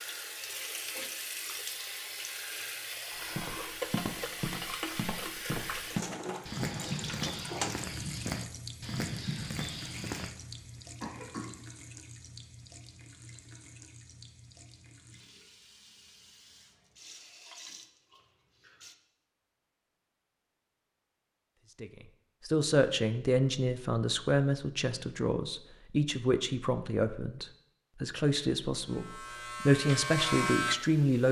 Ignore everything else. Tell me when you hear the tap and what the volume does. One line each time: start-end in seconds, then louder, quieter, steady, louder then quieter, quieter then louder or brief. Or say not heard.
0.0-18.9 quieter.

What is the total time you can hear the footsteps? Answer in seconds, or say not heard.
7 s.